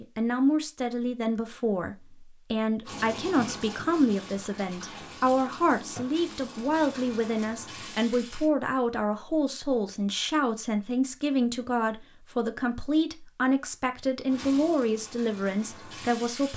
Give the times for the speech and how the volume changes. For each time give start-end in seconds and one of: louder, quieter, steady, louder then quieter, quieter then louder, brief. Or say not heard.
0.0-16.5 steady.